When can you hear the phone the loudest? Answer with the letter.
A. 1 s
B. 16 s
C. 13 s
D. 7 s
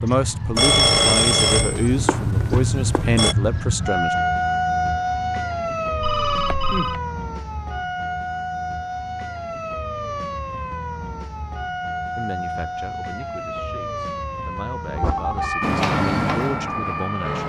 A.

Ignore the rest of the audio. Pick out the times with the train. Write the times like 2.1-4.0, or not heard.
15.6-17.4.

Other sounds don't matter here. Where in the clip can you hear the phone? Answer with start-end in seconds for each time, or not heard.
0.6-3.4, 6.0-7.0, 14.9-15.6.